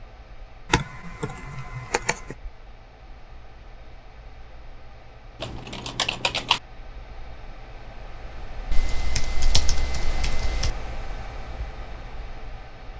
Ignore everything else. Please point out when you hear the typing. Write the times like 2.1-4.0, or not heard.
0.7-2.4, 5.4-6.6, 8.7-10.7.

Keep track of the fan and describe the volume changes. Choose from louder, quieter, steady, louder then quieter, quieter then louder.
louder.